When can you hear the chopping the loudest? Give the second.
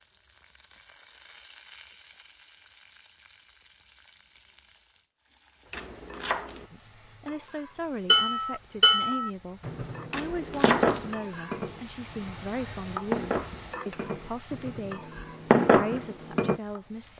11 s.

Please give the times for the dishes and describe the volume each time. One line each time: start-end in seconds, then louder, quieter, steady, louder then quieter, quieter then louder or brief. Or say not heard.
8.1-16.6 quieter then louder.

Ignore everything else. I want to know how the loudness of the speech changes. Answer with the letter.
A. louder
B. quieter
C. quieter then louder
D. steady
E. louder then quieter
D.